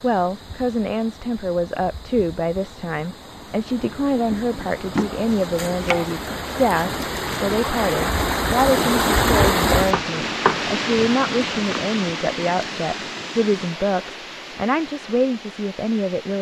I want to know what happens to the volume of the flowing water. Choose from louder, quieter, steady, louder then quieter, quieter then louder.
louder then quieter.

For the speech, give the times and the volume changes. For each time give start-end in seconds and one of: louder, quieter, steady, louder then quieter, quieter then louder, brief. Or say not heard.
0.0-16.3 steady.